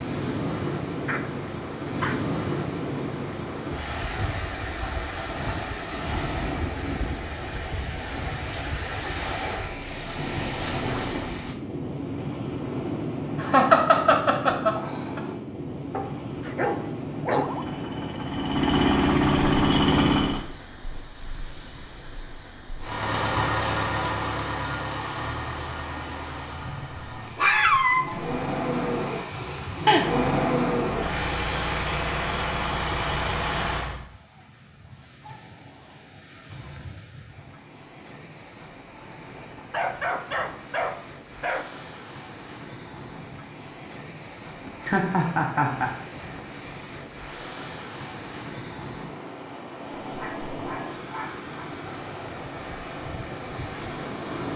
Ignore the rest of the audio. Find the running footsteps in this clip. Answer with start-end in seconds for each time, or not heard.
not heard.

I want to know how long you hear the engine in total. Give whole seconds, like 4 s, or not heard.
14 s.